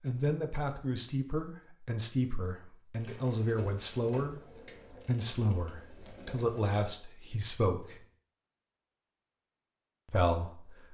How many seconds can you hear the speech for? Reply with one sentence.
The speech can be heard for 9 seconds in total.